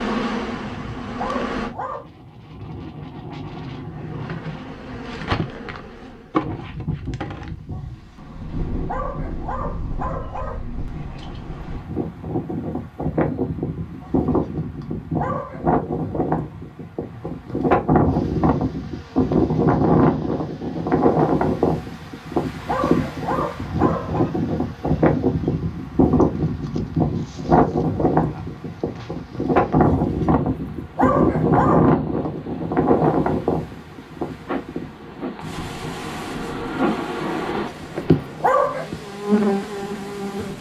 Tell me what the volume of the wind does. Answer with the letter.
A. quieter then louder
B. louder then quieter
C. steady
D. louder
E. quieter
B.